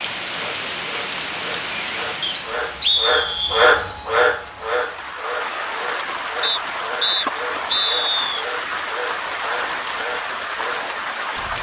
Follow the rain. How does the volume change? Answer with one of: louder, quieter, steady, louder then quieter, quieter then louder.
quieter then louder.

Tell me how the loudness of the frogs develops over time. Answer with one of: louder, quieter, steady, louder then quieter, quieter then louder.
louder then quieter.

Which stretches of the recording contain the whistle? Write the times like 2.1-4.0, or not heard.
2.2-3.7, 6.4-8.2.